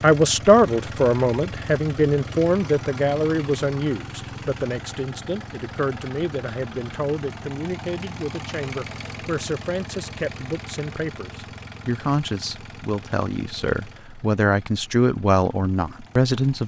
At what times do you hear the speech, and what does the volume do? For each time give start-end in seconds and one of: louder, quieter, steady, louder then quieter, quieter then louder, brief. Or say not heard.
0.0-16.6 quieter then louder.